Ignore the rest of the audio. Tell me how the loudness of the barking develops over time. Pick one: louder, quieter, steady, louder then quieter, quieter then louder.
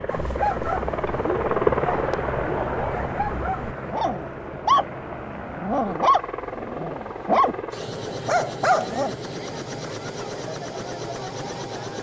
louder.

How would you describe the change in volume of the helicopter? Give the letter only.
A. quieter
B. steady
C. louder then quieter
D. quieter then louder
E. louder
A.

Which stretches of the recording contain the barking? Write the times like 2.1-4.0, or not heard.
0.1-9.2.